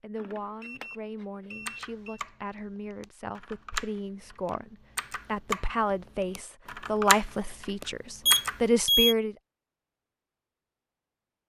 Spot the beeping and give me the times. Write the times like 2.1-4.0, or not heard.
0.1-2.2, 8.2-9.2.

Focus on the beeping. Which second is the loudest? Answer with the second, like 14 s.
9 s.